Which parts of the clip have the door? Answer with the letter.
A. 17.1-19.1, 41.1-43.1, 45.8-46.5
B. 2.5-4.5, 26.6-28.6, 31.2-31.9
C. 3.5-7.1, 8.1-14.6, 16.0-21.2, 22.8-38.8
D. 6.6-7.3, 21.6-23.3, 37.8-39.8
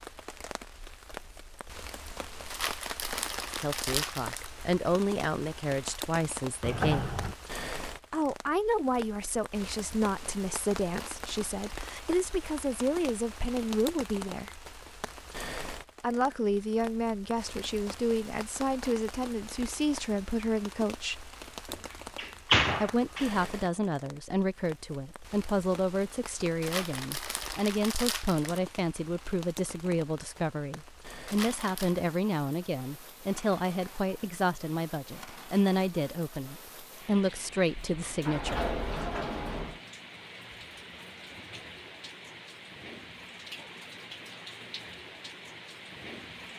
D.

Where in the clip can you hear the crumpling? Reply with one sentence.
The crumpling can be heard from 2.5 to 4.5 s, from 26.6 to 28.6 s and from 31.2 to 31.9 s.